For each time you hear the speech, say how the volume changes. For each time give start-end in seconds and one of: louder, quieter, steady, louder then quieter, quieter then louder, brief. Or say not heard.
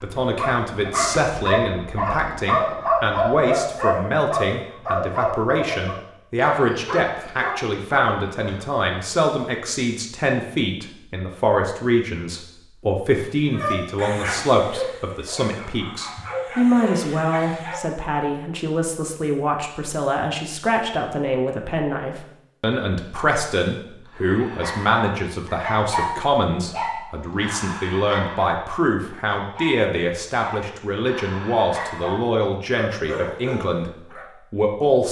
0.0-33.9 steady
34.5-35.0 brief.